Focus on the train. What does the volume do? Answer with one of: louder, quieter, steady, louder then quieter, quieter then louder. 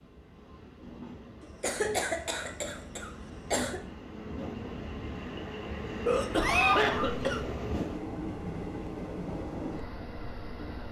louder.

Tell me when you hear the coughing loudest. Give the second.
7 s.